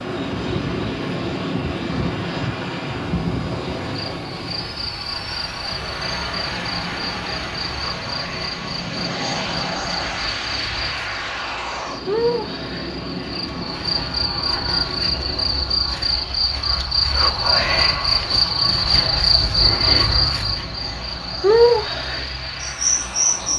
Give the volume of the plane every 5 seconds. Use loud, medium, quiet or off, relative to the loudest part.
loud, loud, loud, medium, medium.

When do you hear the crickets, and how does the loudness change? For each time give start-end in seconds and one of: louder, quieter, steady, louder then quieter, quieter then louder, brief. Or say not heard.
0.1-23.5 louder.